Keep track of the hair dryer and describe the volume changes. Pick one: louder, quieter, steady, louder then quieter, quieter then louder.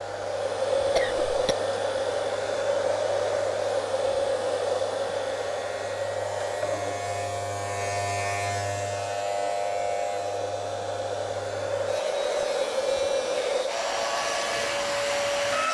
quieter then louder.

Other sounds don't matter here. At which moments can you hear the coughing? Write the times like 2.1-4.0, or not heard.
0.9-1.6.